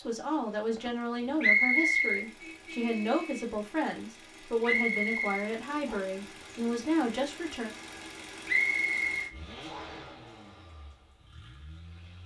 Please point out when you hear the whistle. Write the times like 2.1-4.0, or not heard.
1.4-2.2, 4.6-6.0, 8.4-10.1.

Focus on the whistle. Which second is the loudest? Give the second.
2 s.